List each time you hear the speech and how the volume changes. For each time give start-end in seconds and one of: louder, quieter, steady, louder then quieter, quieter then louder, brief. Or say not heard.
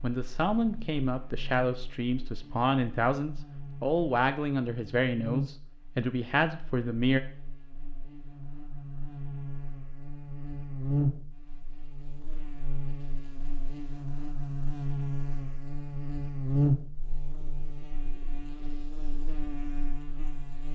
0.0-7.2 steady.